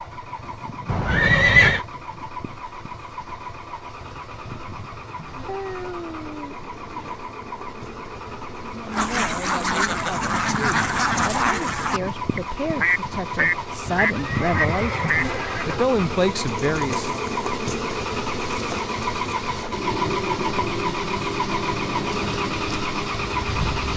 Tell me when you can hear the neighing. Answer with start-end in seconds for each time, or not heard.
0.8-1.9, 14.1-15.8.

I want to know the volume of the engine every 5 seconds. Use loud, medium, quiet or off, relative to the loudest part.
medium, medium, medium, loud, loud.